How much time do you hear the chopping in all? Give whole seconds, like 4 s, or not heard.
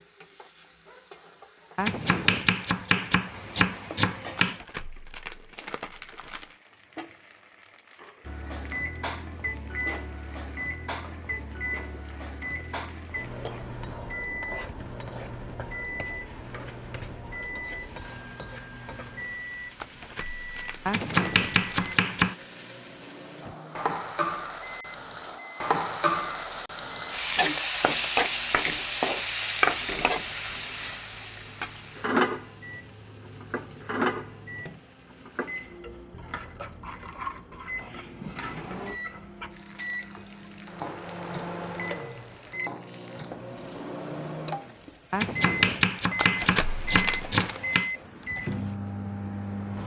7 s.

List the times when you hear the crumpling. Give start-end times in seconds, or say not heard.
4.3-6.6, 19.8-22.1, 46.1-47.6.